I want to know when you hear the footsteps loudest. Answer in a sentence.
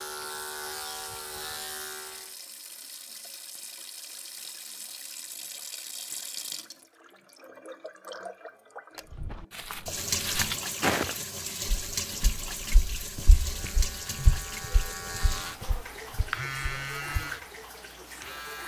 The volume of the footsteps peaks at 11 seconds.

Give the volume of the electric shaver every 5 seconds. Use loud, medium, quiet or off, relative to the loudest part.
loud, off, medium, loud.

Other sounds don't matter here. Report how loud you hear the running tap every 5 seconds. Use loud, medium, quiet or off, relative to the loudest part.
medium, medium, loud, medium.